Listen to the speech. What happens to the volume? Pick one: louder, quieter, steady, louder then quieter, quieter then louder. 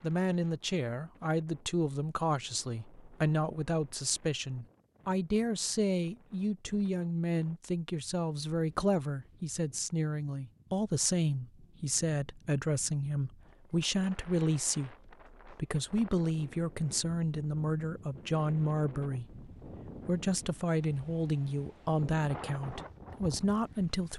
steady.